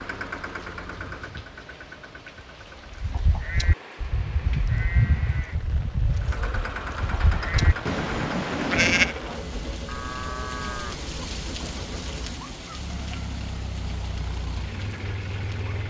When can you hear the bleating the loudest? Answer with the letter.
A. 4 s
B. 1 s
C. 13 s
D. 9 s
D.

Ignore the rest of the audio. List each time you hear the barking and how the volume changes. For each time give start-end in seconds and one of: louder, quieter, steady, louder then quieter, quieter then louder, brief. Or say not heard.
not heard.